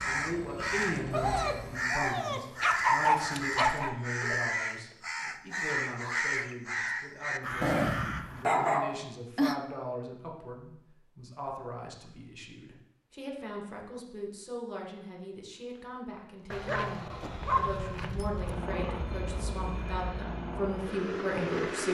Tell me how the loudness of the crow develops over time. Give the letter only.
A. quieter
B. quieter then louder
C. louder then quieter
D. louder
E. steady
E.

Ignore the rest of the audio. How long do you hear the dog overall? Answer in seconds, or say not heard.
7 s.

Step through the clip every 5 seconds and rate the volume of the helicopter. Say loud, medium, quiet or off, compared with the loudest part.
medium, off, off, loud, loud.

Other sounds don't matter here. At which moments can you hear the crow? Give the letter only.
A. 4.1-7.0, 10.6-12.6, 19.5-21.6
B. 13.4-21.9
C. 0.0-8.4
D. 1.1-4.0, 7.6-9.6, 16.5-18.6
C.